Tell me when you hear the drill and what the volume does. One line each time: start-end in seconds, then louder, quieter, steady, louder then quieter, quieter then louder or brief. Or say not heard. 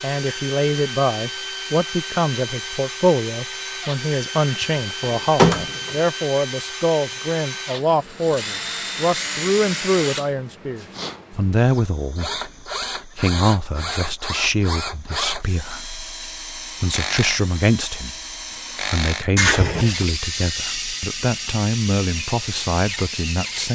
0.0-23.7 steady.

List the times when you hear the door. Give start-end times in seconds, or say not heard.
4.4-6.0, 19.4-19.9.